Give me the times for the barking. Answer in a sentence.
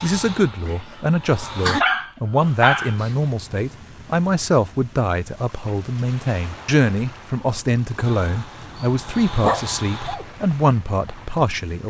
The barking can be heard from 0.6 to 3.1 s and from 8.6 to 10.2 s.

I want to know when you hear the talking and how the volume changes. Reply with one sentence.
The talking can be heard from 0.0 to 11.8 s, at a steady volume.